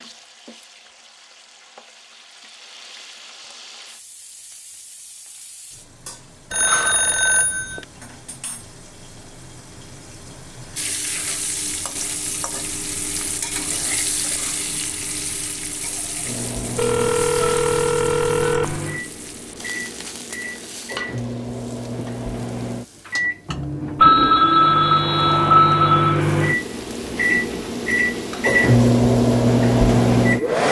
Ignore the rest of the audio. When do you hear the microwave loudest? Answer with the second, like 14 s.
29 s.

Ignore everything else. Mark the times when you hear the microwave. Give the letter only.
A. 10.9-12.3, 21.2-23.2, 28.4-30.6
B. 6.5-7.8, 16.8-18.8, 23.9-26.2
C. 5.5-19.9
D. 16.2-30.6
D.